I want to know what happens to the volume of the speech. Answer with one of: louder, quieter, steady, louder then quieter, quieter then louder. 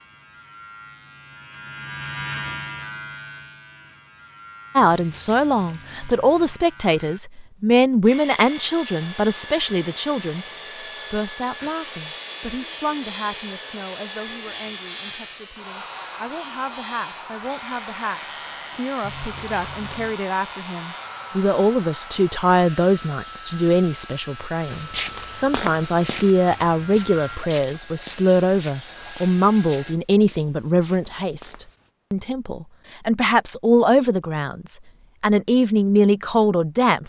quieter then louder.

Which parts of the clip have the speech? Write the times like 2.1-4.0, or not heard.
4.8-10.4, 11.1-37.0.